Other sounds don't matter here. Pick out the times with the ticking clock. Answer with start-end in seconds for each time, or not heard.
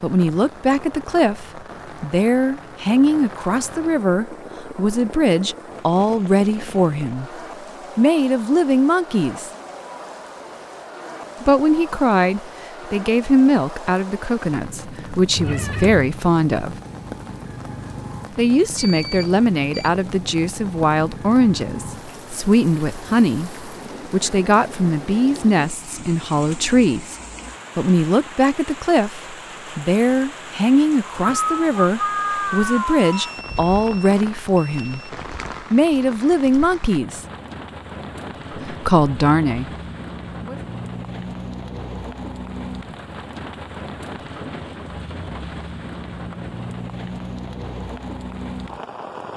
not heard.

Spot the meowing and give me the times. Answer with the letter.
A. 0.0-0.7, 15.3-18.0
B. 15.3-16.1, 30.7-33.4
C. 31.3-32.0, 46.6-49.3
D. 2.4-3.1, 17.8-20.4
B.